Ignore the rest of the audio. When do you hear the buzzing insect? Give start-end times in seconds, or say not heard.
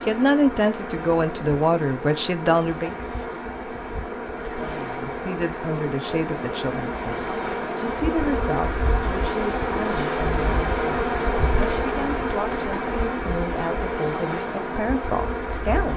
0.0-15.9.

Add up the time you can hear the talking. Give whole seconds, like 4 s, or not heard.
14 s.